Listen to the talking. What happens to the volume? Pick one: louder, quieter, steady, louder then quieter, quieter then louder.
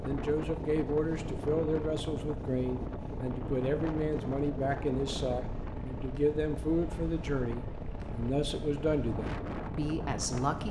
steady.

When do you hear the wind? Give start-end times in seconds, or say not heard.
0.0-10.6.